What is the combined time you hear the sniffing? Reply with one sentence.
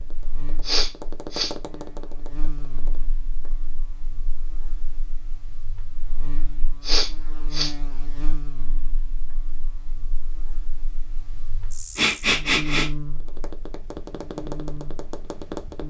You can hear the sniffing for 3 seconds altogether.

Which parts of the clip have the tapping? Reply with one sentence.
The tapping can be heard from 0.0 to 3.6 s and from 13.1 to 15.8 s.